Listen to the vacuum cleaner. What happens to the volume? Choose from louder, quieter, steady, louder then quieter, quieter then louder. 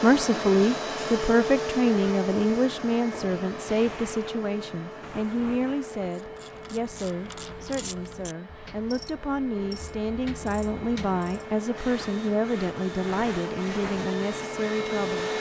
quieter then louder.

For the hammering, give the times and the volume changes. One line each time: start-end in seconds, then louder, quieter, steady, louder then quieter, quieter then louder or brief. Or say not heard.
not heard.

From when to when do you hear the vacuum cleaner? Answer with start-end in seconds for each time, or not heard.
0.0-15.3.